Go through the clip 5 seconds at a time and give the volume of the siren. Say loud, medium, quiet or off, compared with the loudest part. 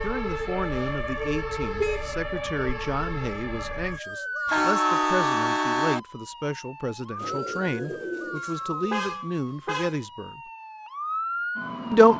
loud, medium, loud.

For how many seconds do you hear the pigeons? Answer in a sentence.
You can hear the pigeons for 2 seconds altogether.